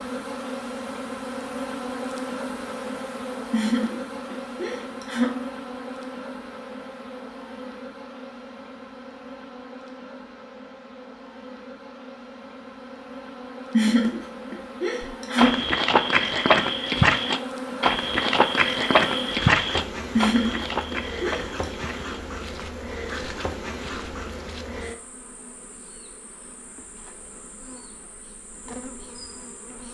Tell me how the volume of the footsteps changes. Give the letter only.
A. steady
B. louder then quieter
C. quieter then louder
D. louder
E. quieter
E.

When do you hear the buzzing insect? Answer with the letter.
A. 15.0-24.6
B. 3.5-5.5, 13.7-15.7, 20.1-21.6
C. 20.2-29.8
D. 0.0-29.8
D.